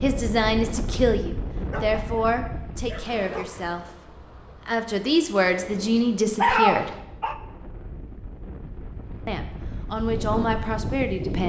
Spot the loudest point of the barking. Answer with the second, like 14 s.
7 s.